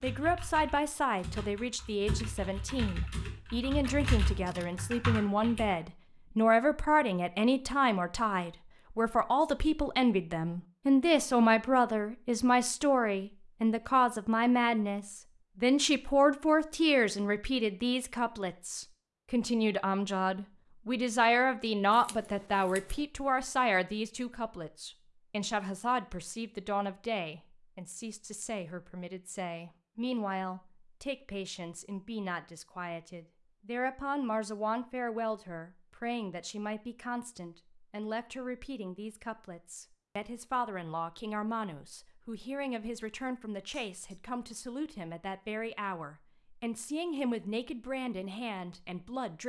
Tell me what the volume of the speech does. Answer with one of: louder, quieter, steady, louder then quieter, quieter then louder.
quieter.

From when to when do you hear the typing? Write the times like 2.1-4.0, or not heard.
0.0-5.8.